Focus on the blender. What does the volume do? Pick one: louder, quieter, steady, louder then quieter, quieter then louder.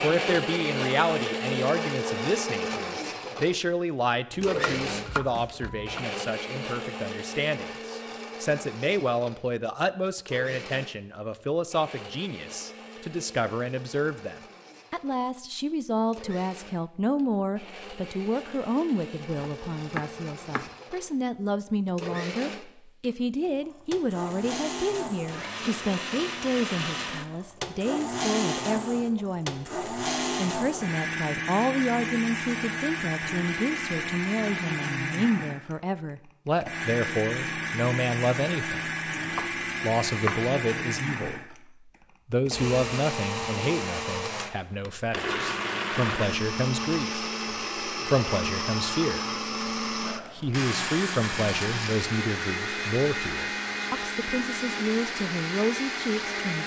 quieter then louder.